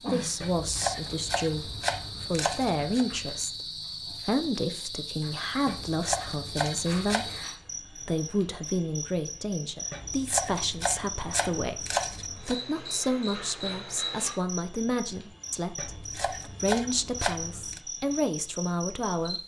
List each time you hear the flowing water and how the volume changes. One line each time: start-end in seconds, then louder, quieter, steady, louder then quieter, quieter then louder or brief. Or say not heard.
not heard.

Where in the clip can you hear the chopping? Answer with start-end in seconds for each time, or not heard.
0.4-3.0, 5.7-7.5, 9.9-12.6, 15.8-17.8.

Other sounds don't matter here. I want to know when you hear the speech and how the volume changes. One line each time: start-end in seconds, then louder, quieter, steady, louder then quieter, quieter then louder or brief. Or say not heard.
0.0-19.4 steady.